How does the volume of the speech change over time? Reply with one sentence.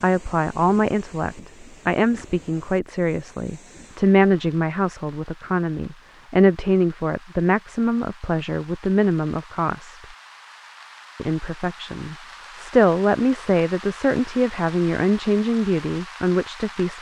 The loudness of the speech stays about the same.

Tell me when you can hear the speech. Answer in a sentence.
The speech can be heard from 0.0 to 10.0 s and from 11.2 to 16.9 s.